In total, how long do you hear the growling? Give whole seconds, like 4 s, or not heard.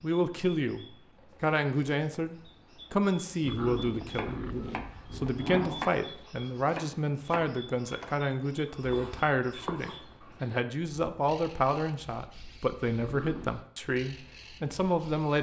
3 s.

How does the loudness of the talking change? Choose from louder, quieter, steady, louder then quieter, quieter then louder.
steady.